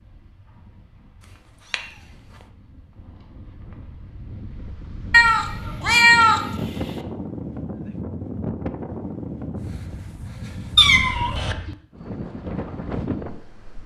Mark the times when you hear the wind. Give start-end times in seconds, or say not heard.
0.0-13.8.